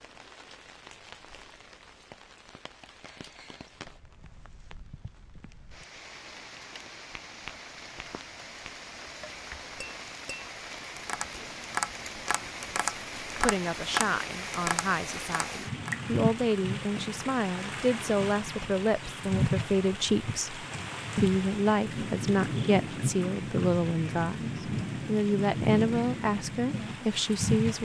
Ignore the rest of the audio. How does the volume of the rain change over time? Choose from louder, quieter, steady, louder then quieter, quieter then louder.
louder.